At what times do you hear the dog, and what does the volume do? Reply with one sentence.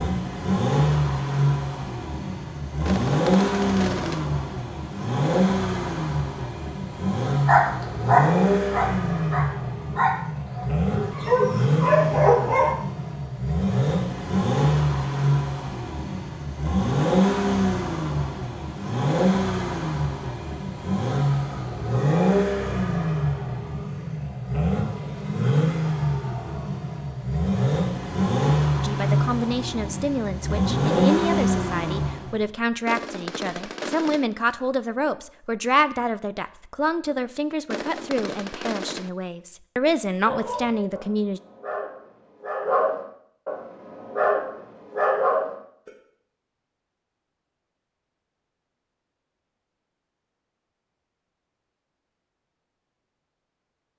You can hear the dog from 7.5 to 12.8 s, getting quieter then louder; and from 40.2 to 45.9 s, getting louder.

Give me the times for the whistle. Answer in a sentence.
You can't hear the whistle here.